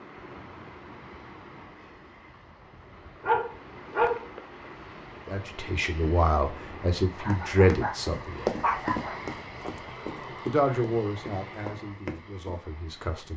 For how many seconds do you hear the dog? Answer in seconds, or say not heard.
3 s.